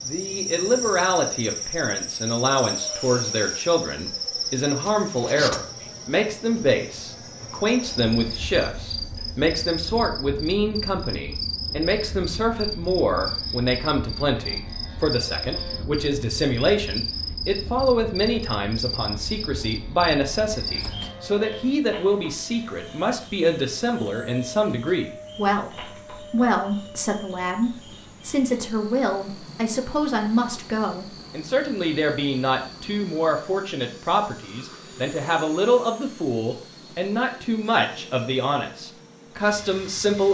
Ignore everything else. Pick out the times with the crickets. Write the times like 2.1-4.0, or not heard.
0.0-33.5.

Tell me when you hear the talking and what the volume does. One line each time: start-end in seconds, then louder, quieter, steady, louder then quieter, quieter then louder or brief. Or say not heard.
0.1-40.2 steady.